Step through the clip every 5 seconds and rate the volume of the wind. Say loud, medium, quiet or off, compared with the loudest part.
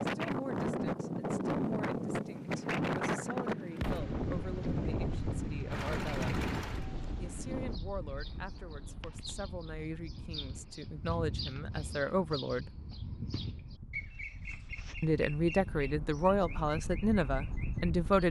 loud, medium, quiet, medium.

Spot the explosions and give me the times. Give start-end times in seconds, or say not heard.
3.8-4.2.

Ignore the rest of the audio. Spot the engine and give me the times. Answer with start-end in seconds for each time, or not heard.
2.2-6.8.